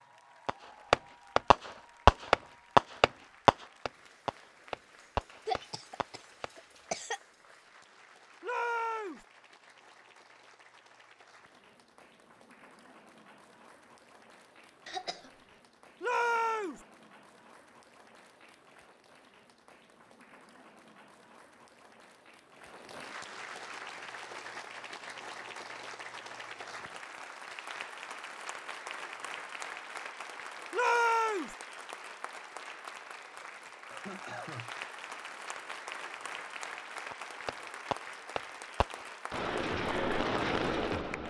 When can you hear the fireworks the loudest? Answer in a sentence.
The loudest moment of the fireworks is at 2 seconds.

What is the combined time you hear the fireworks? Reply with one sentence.
The fireworks can be heard for 10 seconds in total.